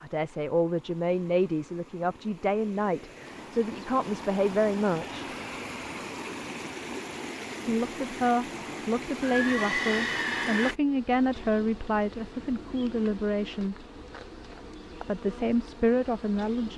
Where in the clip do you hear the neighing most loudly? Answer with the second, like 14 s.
10 s.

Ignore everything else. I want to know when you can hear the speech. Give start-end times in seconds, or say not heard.
0.0-5.3, 7.7-13.8, 15.1-16.7.